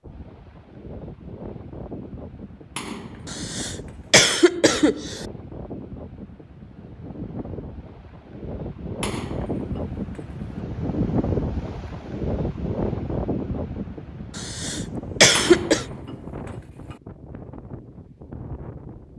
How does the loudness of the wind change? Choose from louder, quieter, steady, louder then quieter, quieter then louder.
louder then quieter.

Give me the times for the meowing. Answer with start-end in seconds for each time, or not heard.
not heard.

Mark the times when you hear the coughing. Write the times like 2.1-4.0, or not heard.
3.3-5.2, 14.3-15.8.